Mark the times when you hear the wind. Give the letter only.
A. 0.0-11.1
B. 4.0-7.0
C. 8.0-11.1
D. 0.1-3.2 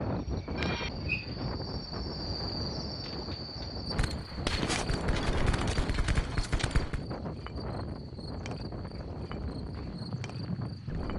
A.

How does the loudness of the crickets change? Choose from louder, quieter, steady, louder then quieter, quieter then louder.
quieter.